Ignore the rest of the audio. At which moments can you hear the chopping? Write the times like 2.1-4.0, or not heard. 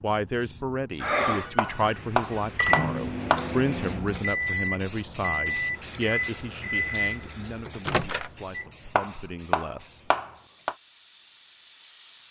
1.6-3.5, 8.9-10.8.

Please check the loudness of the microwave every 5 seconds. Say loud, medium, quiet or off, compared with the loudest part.
loud, loud, off.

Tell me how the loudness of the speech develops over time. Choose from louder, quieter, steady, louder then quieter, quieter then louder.
quieter.